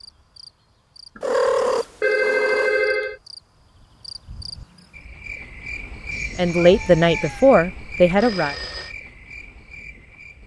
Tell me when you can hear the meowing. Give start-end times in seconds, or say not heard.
1.2-2.8, 6.1-7.5.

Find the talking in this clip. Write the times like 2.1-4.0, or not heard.
6.3-8.6.